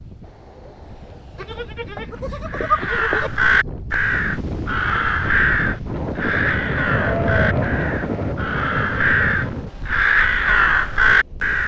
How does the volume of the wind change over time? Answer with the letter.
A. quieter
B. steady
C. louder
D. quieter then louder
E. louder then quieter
E.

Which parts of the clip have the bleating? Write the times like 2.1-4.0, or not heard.
1.4-3.3, 6.8-8.3.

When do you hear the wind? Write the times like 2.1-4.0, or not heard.
0.0-11.6.